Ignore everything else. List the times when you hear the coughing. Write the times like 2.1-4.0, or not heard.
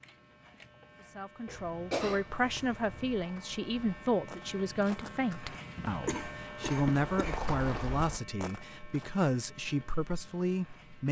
1.4-3.2, 5.8-7.5.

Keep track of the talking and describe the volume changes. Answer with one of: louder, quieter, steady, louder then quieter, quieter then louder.
steady.